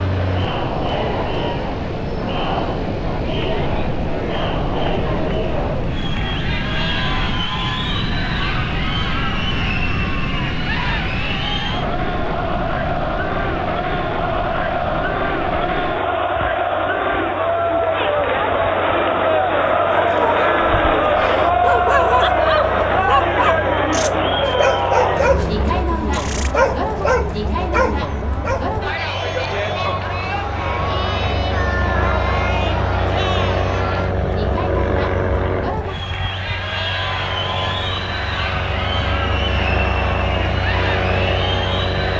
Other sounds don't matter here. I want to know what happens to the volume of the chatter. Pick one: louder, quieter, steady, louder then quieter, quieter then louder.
louder then quieter.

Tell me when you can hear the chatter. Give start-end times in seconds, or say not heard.
0.0-42.1.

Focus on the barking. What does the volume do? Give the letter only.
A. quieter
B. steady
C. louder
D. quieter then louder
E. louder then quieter
C.